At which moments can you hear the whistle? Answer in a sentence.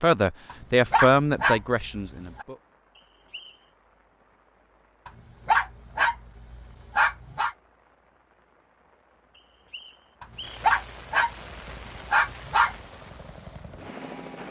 You can hear the whistle from 3.0 to 3.6 s and from 9.3 to 10.7 s.